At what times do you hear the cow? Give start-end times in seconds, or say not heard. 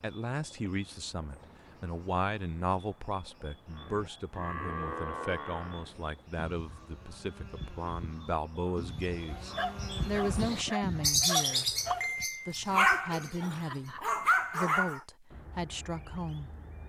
3.7-11.3.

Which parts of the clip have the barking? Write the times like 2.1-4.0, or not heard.
9.0-15.0.